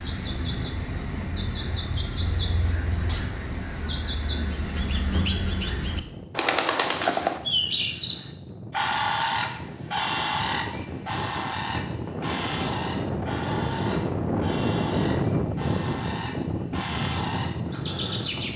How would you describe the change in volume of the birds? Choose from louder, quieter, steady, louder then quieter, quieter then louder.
louder then quieter.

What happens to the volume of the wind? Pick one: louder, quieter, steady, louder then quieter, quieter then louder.
louder.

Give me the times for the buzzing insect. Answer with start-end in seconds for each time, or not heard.
not heard.